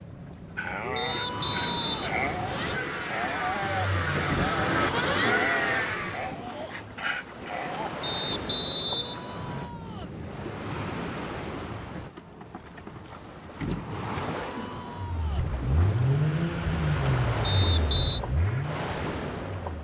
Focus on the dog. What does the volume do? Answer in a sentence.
The volume of the dog stays about the same.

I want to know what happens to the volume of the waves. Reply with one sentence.
The loudness of the waves stays about the same.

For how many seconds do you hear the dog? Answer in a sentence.
The dog can be heard for 8 seconds in total.